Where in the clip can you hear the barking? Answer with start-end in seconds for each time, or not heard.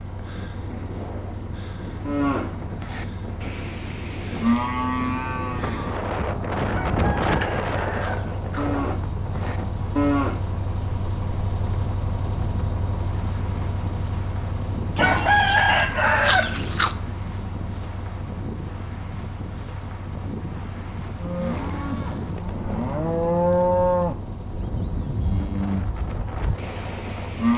not heard.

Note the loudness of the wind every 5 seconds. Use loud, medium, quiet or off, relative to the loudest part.
medium, loud, medium, medium, medium, medium.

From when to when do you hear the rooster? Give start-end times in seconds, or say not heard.
6.7-8.7, 14.9-16.9.